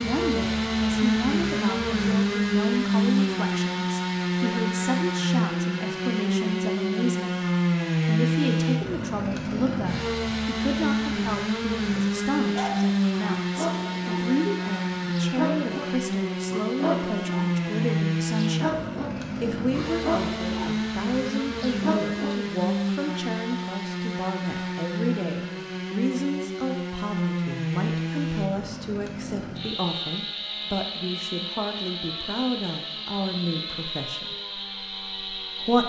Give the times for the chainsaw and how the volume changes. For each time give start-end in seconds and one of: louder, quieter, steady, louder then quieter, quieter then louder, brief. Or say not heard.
0.0-35.8 quieter.